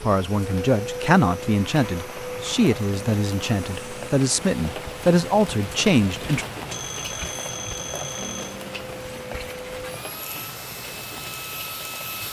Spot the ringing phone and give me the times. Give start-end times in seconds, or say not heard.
6.7-8.6.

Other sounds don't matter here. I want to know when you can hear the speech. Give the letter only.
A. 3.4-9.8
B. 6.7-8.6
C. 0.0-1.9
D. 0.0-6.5
D.